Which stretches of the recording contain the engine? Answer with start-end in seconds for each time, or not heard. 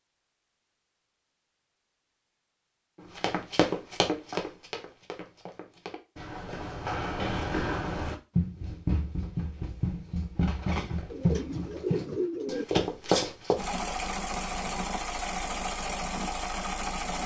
13.6-17.2.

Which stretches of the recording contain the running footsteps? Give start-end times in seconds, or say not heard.
3.1-13.6.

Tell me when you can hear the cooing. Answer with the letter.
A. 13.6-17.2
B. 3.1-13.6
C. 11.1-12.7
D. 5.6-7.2
C.